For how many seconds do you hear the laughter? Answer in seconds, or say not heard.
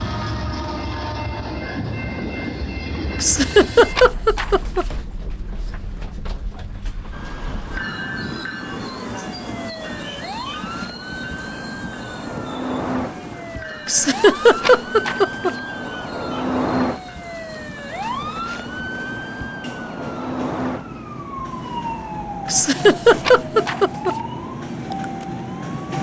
5 s.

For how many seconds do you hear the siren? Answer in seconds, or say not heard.
19 s.